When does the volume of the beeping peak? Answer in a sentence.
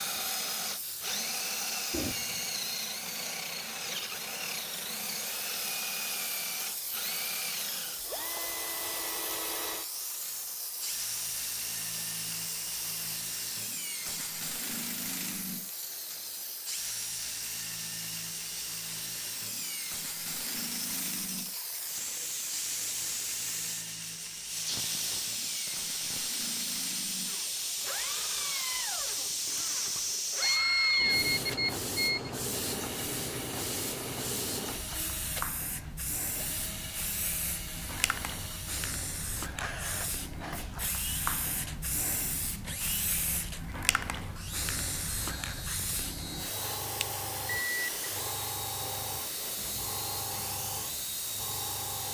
The volume of the beeping peaks at 31 seconds.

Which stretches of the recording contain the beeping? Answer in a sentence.
You can hear the beeping from 1.9 to 2.5 s, from 30.4 to 32.3 s and from 47.0 to 47.9 s.